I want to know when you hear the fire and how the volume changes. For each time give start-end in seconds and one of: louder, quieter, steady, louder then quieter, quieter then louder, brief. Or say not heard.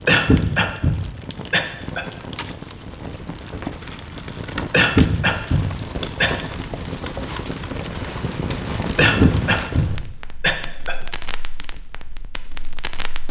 0.0-13.2 louder then quieter.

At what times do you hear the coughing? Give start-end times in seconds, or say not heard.
0.1-2.0, 4.7-6.3, 8.9-10.9.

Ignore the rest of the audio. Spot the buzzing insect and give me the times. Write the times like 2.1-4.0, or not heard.
not heard.